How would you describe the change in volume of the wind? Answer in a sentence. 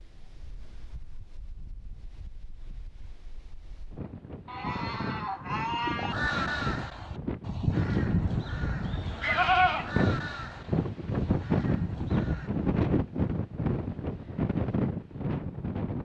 The loudness of the wind goes up.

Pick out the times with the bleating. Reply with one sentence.
The bleating can be heard from 4.5 to 6.2 s and from 8.2 to 9.9 s.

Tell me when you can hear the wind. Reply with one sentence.
The wind can be heard from 0.0 to 16.0 s.